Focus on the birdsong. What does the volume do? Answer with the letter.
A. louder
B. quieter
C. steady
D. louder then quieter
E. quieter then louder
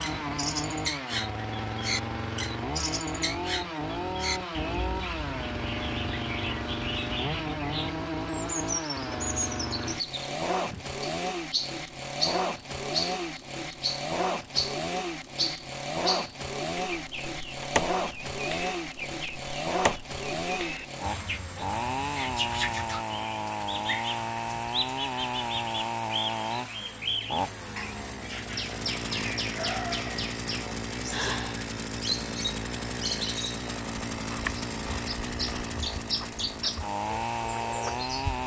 C.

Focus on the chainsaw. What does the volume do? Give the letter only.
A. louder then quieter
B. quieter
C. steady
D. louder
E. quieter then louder
C.